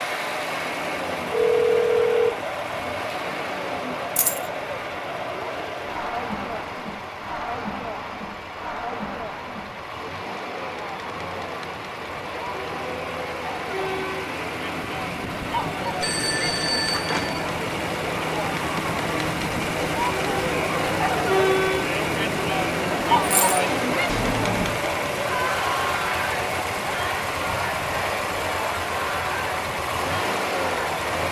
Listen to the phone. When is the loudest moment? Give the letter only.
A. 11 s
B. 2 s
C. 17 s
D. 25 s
B.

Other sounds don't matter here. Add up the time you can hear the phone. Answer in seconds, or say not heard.
3 s.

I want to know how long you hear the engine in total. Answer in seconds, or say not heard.
31 s.